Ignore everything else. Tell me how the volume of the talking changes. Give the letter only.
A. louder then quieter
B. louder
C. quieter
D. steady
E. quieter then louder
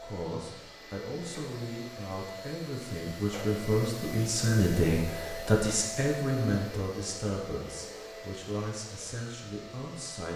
A.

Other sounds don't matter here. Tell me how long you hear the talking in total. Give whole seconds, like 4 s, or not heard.
10 s.